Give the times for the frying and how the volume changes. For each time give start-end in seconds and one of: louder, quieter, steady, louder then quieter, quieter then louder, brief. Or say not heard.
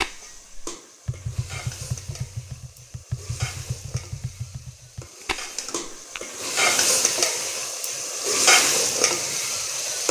0.0-10.0 louder.